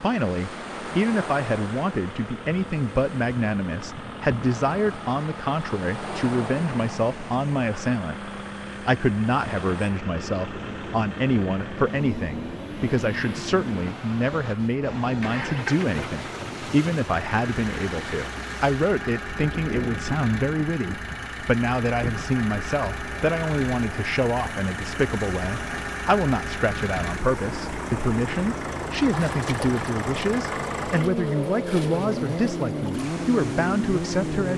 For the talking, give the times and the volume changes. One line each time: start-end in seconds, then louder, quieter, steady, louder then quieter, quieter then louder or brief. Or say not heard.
0.0-34.5 steady.